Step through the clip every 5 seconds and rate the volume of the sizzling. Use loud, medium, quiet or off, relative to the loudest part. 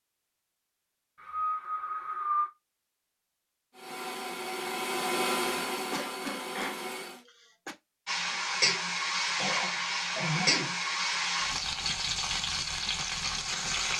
off, loud, loud.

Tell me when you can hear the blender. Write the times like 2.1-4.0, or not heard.
3.7-7.2.